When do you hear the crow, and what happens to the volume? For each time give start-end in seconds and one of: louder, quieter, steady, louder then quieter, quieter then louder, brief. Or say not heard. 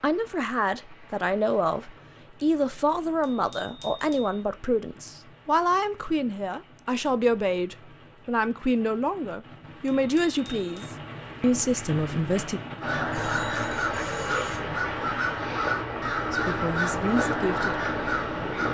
12.8-18.6 steady.